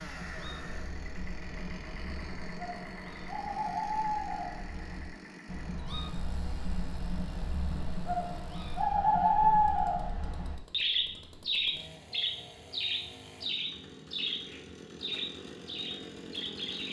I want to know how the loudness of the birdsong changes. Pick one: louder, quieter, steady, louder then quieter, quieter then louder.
louder then quieter.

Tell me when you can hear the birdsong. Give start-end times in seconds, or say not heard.
0.0-16.8.